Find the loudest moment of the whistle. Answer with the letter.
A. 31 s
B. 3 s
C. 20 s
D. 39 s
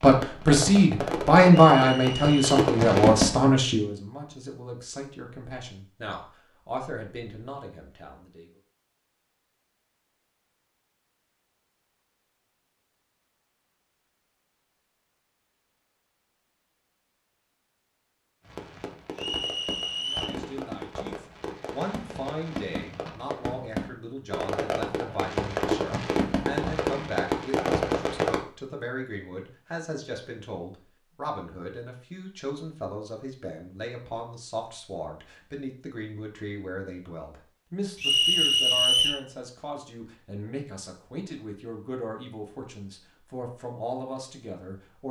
D.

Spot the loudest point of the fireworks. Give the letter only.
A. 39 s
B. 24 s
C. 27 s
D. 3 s
D.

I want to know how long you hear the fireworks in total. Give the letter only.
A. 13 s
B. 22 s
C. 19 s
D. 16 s
A.